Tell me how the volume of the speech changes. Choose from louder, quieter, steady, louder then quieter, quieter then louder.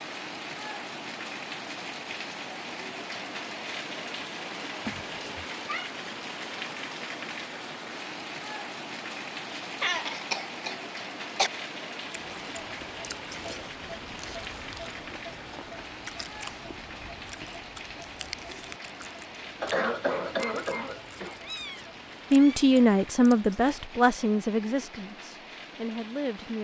quieter then louder.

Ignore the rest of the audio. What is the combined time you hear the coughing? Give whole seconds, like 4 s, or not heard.
4 s.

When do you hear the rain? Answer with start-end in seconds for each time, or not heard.
0.0-26.6.